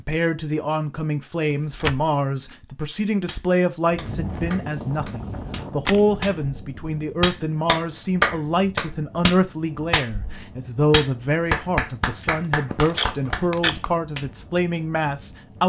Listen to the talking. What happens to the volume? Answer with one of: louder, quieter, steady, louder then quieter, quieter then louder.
steady.